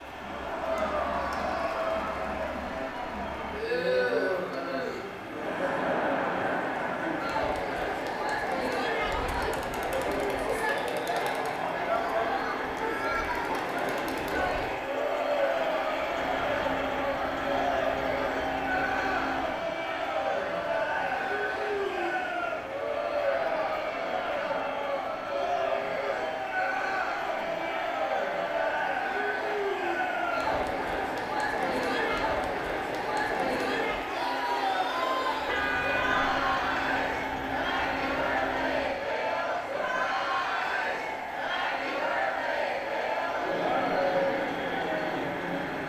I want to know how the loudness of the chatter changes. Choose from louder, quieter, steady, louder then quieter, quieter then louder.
steady.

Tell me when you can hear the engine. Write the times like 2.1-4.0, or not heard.
0.0-45.8.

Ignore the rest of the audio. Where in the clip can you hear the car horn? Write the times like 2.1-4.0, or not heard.
35.5-36.4.